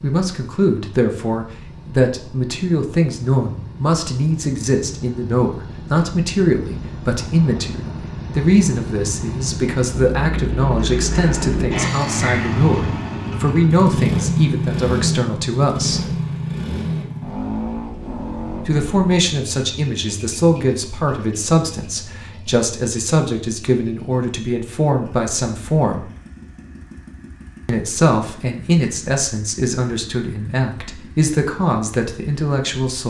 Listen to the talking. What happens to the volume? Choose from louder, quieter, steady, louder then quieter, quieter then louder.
steady.